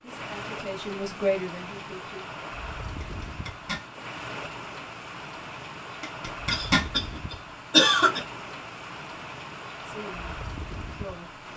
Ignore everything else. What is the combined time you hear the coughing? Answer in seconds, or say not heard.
2 s.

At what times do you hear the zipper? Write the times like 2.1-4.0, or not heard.
3.0-3.9, 6.0-6.8.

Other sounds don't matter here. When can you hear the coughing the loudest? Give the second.
8 s.